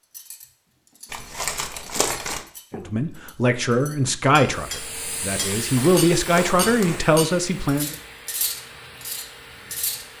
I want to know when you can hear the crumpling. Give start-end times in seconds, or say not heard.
1.1-2.5, 5.5-7.2.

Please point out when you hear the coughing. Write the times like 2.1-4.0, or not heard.
not heard.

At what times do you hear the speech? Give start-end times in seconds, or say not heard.
2.8-7.9.